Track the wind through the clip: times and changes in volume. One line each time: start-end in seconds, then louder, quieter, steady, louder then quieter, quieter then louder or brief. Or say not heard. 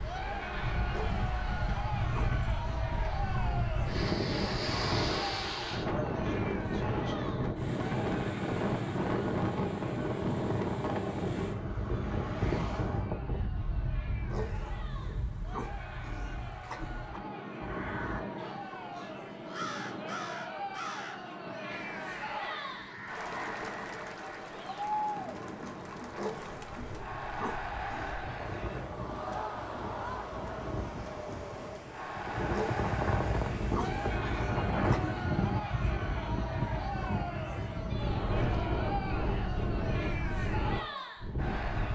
0.0-41.9 quieter then louder.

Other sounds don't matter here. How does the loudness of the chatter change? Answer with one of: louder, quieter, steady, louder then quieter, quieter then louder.
quieter then louder.